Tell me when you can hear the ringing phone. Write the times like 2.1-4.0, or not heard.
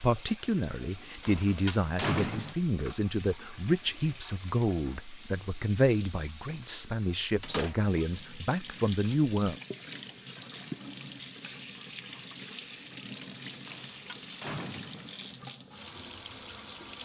not heard.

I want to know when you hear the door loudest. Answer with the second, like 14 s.
2 s.